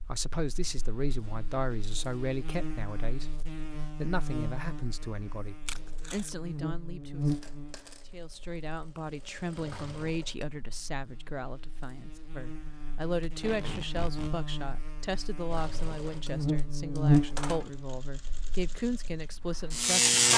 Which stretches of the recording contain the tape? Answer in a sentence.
You can hear the tape from 5.7 to 6.3 s and from 13.2 to 14.3 s.